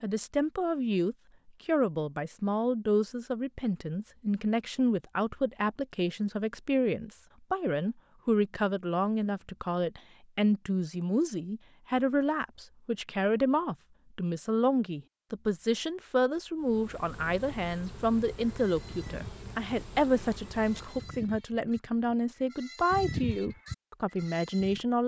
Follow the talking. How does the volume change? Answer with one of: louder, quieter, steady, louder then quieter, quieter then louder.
steady.